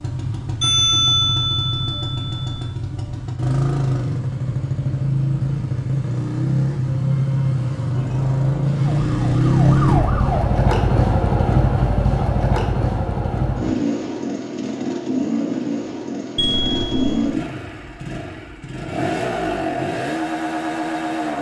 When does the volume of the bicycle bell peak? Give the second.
1 s.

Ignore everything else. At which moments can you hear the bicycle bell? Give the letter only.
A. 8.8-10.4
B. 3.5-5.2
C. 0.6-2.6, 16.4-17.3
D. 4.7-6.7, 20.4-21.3
C.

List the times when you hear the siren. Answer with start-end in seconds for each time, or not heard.
8.8-10.4.